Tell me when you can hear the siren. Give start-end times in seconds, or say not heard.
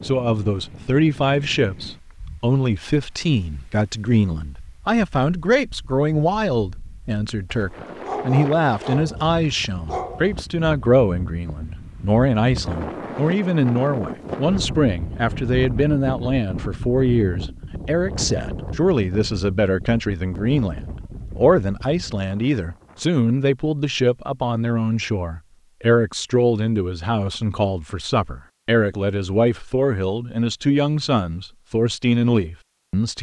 not heard.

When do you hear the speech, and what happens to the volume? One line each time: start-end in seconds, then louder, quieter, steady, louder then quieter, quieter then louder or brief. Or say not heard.
0.0-33.1 steady.